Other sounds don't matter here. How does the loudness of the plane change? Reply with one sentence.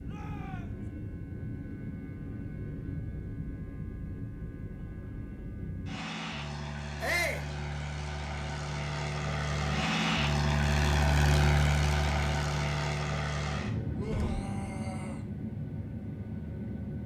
The volume of the plane goes up, then down.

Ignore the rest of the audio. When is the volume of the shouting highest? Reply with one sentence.
The volume of the shouting peaks at 7 seconds.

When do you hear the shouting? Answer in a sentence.
The shouting can be heard from 0.1 to 0.8 s, from 7.0 to 7.5 s and from 13.9 to 15.2 s.